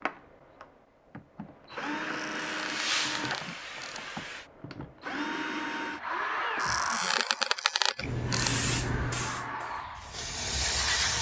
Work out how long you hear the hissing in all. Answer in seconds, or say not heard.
5 s.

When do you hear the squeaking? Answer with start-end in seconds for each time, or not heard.
2.0-4.0, 6.5-8.5.